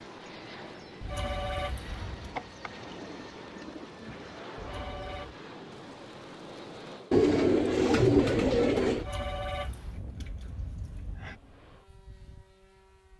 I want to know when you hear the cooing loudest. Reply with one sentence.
The volume of the cooing peaks at 8 seconds.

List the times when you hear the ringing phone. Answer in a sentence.
You can hear the ringing phone from 1.0 to 2.4 s, from 4.5 to 5.3 s and from 8.9 to 11.3 s.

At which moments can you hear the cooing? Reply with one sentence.
The cooing can be heard from 2.4 to 4.4 s and from 7.1 to 9.1 s.